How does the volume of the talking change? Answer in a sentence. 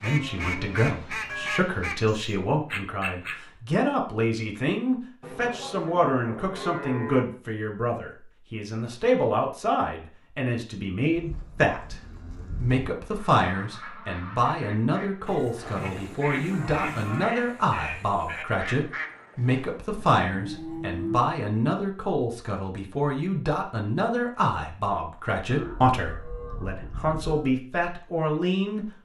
The volume of the talking stays about the same.